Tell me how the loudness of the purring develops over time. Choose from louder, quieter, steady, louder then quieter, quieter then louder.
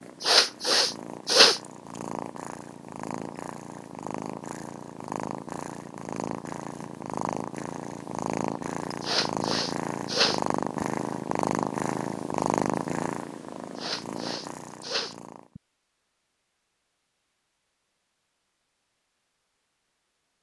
louder.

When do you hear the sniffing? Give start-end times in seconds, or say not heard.
0.2-1.6, 9.0-10.8, 13.8-15.6.